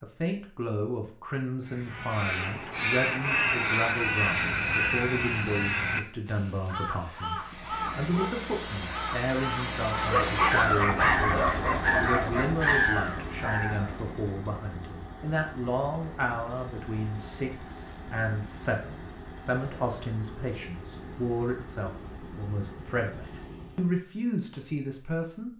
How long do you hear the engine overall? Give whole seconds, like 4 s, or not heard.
17 s.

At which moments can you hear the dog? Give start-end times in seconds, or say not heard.
10.1-12.8.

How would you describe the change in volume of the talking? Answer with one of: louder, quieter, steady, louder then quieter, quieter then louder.
steady.